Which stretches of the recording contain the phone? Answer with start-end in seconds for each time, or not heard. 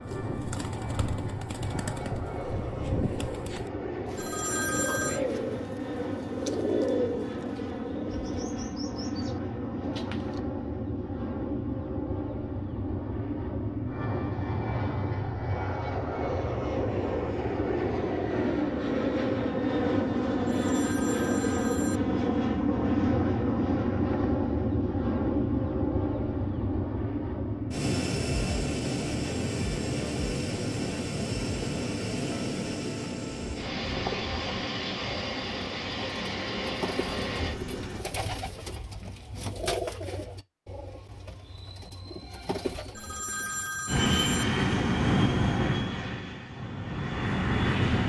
4.2-5.2, 20.4-22.0, 43.0-44.5.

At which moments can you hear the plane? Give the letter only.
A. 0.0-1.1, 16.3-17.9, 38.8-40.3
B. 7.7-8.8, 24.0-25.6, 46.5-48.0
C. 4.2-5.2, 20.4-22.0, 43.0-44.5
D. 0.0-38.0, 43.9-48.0
D.